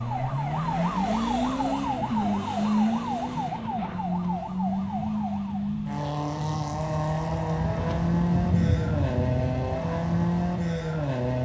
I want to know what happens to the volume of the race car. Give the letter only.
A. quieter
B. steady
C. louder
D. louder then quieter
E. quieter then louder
B.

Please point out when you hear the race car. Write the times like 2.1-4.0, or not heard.
0.0-11.4.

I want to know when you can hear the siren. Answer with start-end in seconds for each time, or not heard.
0.0-5.8.